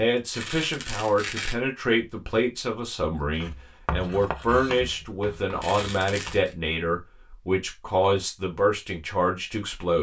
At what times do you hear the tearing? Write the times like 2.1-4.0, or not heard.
0.3-1.6, 5.6-6.5.